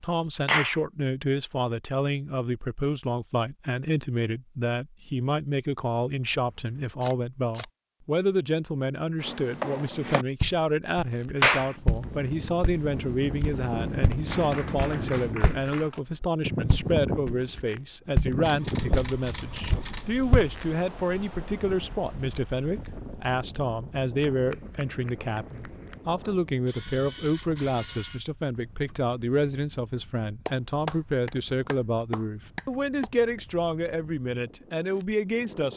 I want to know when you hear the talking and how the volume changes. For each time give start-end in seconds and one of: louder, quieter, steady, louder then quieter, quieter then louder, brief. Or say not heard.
0.0-35.7 steady.